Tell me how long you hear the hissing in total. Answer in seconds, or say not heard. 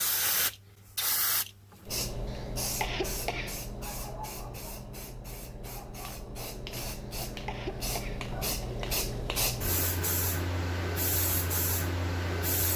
13 s.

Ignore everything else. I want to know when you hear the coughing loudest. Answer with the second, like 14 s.
3 s.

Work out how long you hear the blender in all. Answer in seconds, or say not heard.
not heard.